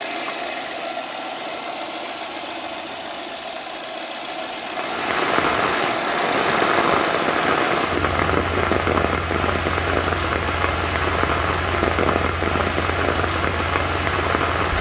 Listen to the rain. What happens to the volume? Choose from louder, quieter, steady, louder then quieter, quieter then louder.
steady.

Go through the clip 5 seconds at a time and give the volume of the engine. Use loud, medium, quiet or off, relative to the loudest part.
loud, loud, medium.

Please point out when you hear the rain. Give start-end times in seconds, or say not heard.
4.7-14.7.